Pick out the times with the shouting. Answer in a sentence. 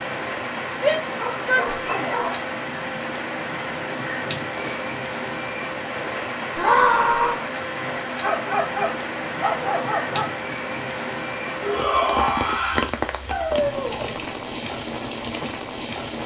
You can hear the shouting from 0.8 to 2.2 s, from 6.5 to 7.4 s and from 11.6 to 12.9 s.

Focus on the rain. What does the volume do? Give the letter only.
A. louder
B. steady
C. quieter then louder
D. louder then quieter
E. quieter
B.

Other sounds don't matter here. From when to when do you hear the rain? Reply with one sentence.
The rain can be heard from 0.0 to 16.2 s.